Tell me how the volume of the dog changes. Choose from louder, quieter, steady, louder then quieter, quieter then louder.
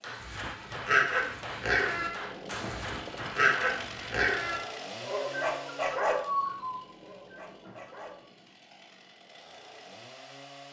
quieter.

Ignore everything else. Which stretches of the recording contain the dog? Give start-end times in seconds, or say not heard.
0.1-8.3.